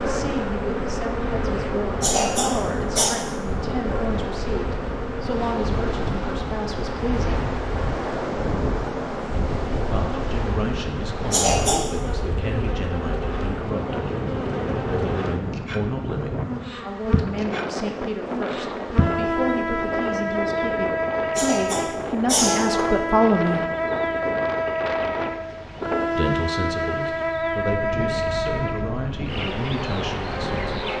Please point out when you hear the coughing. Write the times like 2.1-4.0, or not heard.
2.0-3.1, 11.3-12.0, 21.4-22.9.